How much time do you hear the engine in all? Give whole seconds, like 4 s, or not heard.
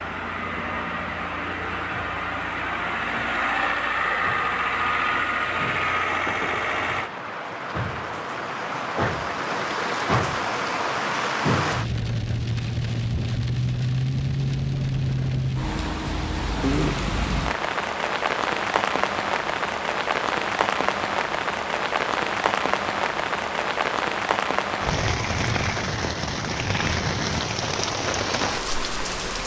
7 s.